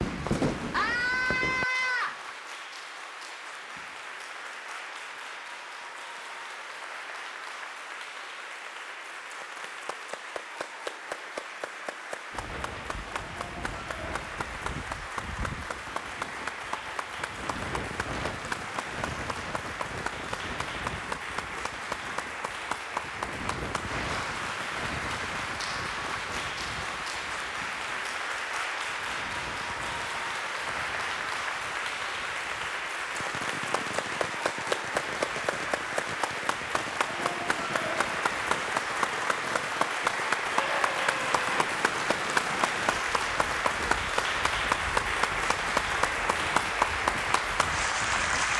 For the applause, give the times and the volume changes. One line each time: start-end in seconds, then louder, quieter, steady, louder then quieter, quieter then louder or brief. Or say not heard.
0.0-48.5 louder.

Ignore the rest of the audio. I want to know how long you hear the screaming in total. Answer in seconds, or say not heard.
2 s.